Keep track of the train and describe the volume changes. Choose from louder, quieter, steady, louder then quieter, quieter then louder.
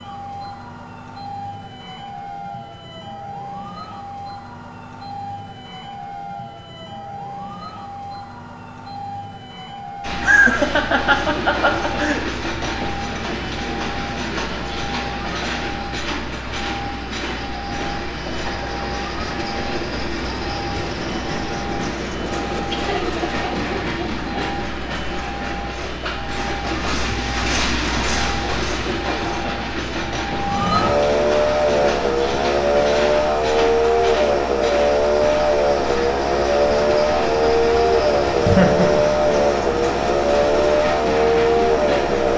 steady.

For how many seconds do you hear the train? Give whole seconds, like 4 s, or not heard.
32 s.